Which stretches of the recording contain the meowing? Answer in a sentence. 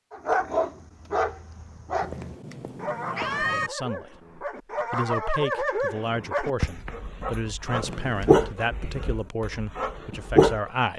You can hear the meowing from 2.0 to 3.7 s and from 7.7 to 8.6 s.